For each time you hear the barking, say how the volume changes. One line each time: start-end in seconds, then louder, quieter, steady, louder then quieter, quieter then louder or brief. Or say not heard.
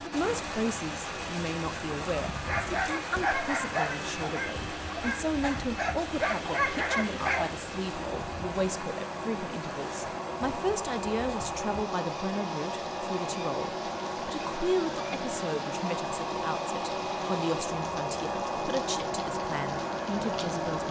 2.5-7.6 quieter then louder.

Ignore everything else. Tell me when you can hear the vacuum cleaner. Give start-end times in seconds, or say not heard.
0.0-20.8.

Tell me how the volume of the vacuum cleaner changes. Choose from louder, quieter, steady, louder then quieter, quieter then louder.
louder.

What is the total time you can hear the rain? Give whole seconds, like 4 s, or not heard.
21 s.